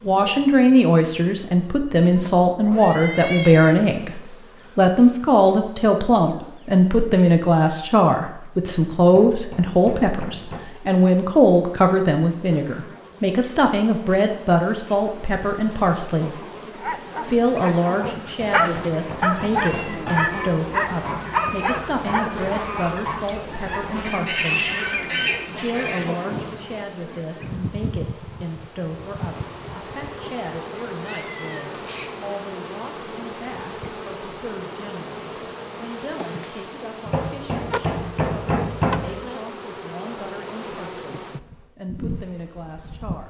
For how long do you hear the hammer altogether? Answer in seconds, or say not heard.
6 s.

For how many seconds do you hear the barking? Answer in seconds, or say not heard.
6 s.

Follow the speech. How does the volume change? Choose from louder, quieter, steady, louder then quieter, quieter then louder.
quieter.